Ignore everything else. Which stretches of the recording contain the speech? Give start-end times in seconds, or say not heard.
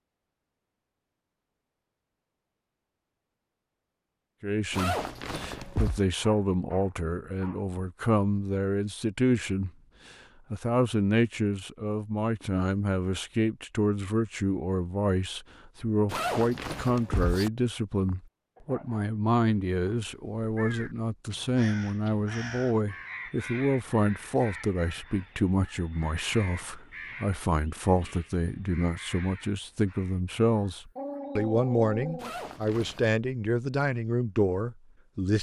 4.4-9.7, 10.5-35.3.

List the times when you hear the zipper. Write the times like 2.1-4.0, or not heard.
4.7-6.0, 16.1-17.5, 32.1-33.1.